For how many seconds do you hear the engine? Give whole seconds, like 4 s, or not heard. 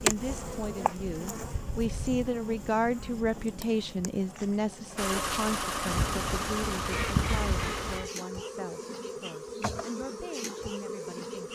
3 s.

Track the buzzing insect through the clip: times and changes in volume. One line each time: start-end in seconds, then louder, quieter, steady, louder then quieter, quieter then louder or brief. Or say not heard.
0.0-11.5 quieter then louder.